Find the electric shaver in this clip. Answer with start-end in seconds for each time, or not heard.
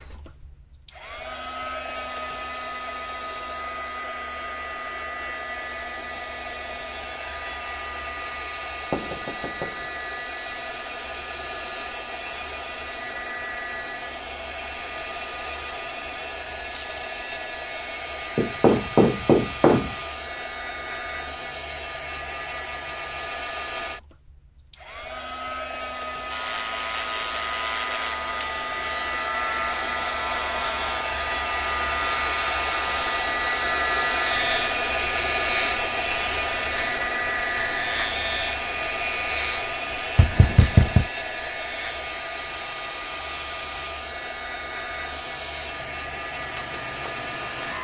26.3-47.7.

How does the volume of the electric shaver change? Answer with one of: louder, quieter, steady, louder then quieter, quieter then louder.
quieter.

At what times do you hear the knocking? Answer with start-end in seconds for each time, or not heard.
8.9-9.8, 18.4-19.9, 40.1-41.0.